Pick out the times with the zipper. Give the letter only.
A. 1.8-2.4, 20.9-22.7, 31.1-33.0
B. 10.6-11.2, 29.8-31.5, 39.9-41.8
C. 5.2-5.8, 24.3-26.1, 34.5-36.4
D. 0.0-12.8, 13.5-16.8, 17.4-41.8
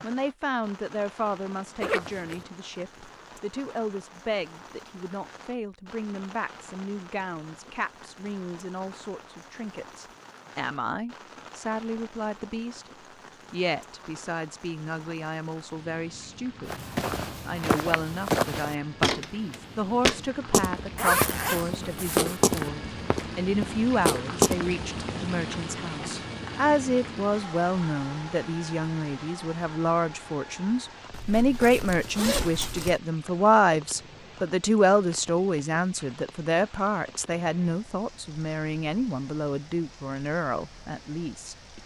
A.